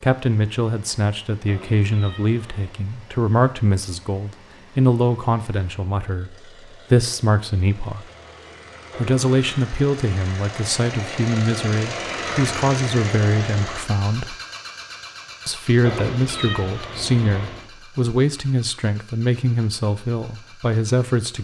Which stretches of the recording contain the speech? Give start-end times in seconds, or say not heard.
0.0-8.1, 8.9-14.3, 15.4-21.3.